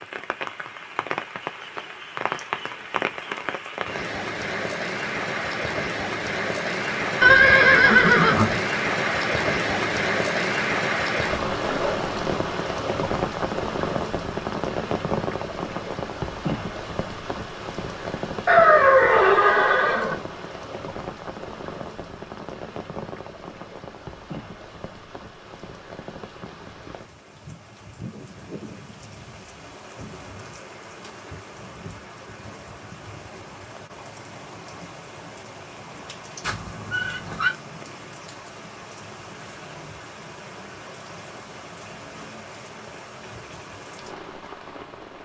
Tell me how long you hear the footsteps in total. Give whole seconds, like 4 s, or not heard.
not heard.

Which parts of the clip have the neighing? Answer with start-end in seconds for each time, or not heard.
7.2-8.6, 18.4-20.1, 36.4-37.5.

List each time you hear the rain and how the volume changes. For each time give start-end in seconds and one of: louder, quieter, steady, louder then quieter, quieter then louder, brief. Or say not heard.
0.0-45.2 quieter.